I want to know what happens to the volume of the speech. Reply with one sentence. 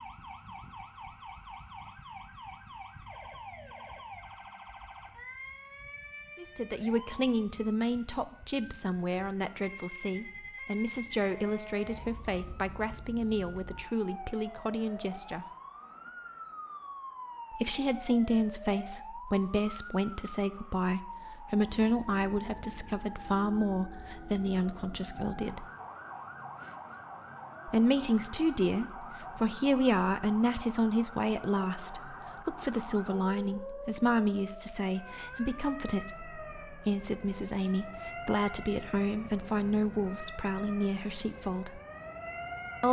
The loudness of the speech stays about the same.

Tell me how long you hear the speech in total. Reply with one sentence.
The speech can be heard for 31 seconds in total.